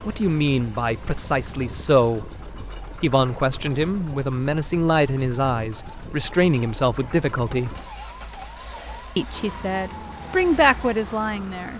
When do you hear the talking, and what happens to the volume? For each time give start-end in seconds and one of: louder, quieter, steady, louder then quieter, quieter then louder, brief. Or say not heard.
0.1-2.4 brief
3.0-7.8 steady
9.2-11.7 brief.